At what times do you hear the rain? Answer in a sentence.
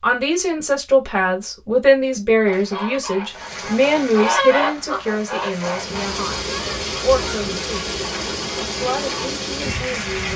You can hear the rain from 3.2 to 10.3 s.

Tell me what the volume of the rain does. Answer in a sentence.
The volume of the rain goes up.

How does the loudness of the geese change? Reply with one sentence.
The volume of the geese goes up, then down.